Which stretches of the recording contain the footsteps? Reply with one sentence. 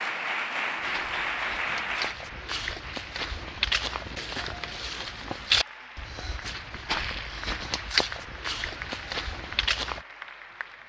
The footsteps can be heard from 0.8 to 10.0 s.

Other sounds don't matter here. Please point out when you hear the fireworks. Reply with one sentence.
The fireworks can't be heard in this clip.